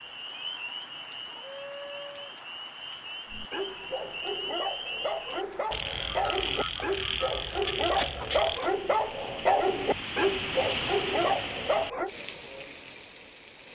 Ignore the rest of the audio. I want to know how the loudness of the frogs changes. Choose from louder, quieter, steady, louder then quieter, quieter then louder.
louder.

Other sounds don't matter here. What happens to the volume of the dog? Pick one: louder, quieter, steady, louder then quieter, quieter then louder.
louder.